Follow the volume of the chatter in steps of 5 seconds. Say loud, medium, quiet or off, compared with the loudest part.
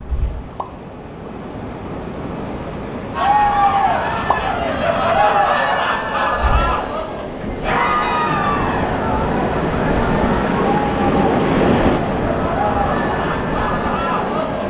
loud, loud, medium.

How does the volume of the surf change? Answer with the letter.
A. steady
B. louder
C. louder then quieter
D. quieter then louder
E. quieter
B.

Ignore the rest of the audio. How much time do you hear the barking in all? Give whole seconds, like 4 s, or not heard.
not heard.